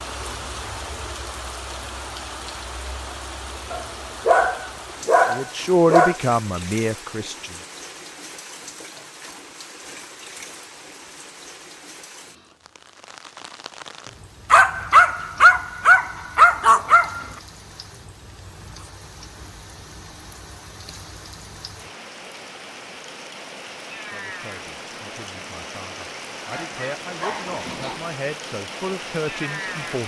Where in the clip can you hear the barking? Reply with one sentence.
The barking can be heard from 3.7 to 6.2 s, from 14.5 to 17.2 s and from 26.5 to 28.1 s.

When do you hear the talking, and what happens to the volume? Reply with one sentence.
You can hear the talking briefly from 5.3 to 7.5 s; and from 24.1 to 30.0 s, getting louder.